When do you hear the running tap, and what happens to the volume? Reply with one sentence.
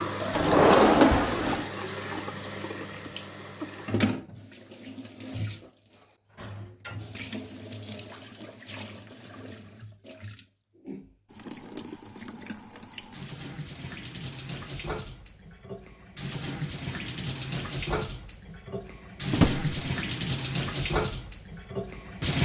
The running tap can be heard from 0.0 to 22.4 s, getting quieter then louder.